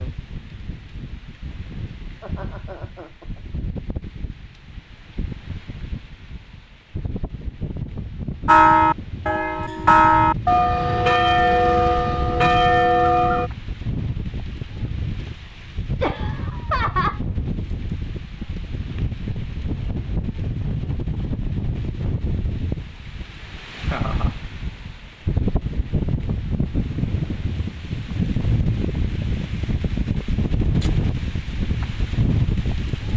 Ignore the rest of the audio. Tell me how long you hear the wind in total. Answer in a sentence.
The wind can be heard for 33 seconds in total.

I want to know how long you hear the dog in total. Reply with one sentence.
You can't hear the dog here.